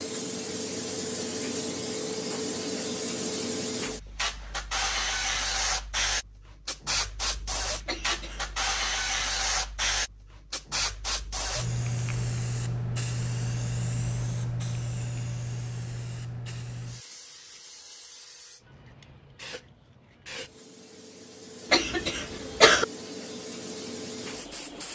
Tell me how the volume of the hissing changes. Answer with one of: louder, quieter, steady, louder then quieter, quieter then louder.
quieter.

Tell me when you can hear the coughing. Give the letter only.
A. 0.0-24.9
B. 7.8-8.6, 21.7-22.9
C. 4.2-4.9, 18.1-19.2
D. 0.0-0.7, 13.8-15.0
B.